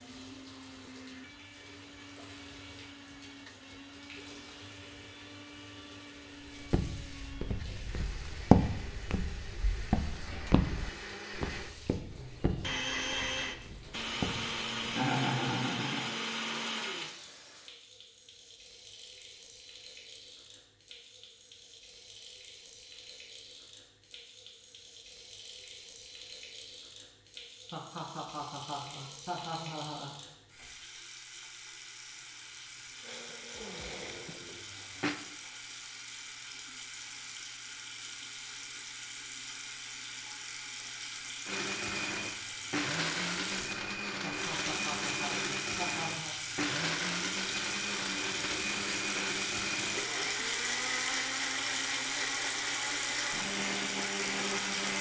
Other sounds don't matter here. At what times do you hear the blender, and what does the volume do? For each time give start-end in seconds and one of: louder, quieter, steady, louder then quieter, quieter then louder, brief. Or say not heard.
0.0-17.1 louder
33.0-35.1 brief
41.5-54.9 steady.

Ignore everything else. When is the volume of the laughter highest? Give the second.
15 s.